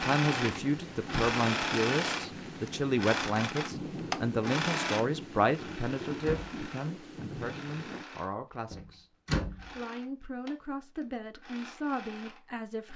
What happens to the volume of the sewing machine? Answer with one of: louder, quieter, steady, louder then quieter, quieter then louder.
quieter.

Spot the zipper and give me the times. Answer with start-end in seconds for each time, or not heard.
not heard.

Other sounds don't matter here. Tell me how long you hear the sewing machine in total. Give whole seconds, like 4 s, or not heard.
13 s.